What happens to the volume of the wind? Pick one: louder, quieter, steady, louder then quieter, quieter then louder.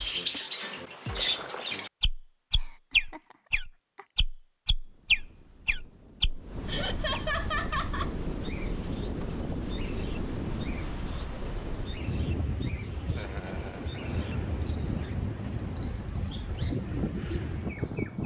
louder.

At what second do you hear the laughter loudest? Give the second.
7 s.